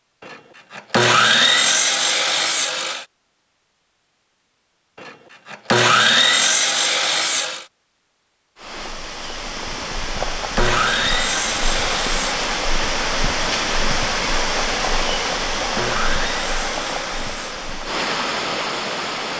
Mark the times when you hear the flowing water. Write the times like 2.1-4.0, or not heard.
8.6-19.3.